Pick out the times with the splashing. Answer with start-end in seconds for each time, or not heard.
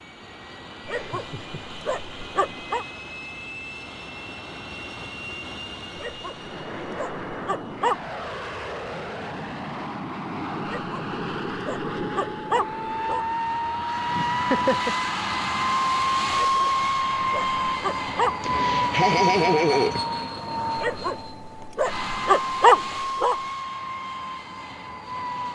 not heard.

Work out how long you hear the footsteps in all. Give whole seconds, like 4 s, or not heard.
not heard.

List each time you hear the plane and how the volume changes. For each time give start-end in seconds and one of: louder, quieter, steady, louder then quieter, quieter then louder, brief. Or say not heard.
0.0-25.4 louder then quieter.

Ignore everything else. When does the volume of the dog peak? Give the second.
23 s.